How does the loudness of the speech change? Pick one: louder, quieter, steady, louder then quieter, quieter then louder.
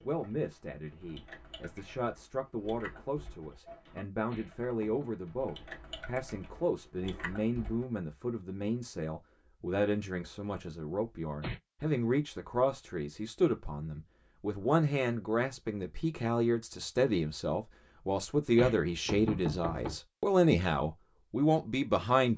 louder.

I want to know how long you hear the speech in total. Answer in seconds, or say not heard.
22 s.